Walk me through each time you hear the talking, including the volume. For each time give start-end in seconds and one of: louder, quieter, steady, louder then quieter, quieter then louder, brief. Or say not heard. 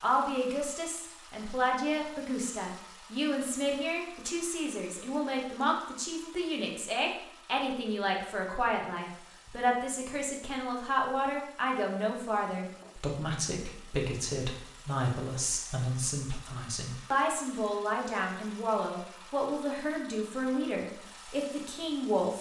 0.0-22.3 steady.